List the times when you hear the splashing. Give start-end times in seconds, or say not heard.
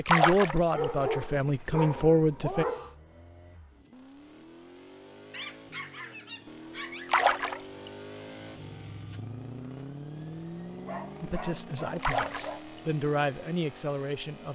0.1-0.8, 7.1-7.9, 12.0-12.8.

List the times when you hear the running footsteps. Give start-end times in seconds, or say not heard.
not heard.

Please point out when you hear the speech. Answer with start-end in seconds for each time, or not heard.
0.0-2.6, 11.2-14.5.